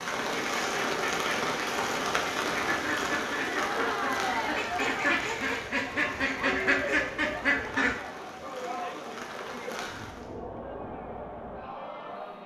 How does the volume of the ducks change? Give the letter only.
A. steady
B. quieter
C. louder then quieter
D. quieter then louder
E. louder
E.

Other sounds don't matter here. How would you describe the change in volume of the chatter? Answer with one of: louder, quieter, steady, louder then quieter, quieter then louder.
quieter.